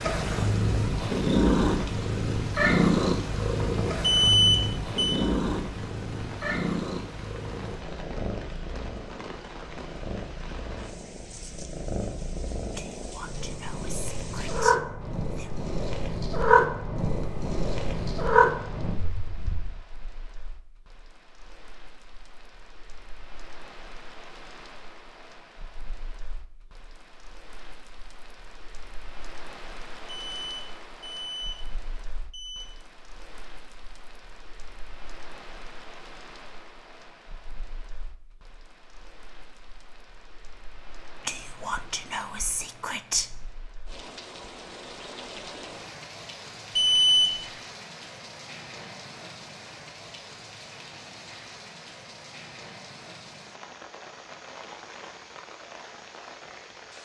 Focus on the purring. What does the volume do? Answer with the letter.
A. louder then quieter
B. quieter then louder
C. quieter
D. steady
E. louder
B.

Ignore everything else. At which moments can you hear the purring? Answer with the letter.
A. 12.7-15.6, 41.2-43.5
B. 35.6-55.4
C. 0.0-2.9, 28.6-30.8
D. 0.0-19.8
D.